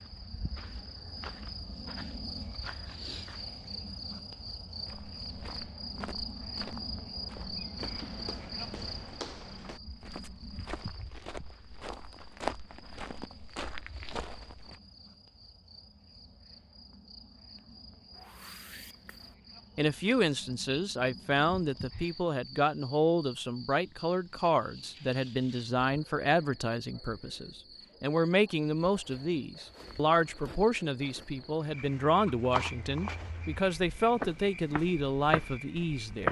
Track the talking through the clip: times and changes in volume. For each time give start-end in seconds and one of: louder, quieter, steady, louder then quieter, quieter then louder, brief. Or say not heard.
19.8-36.2 steady.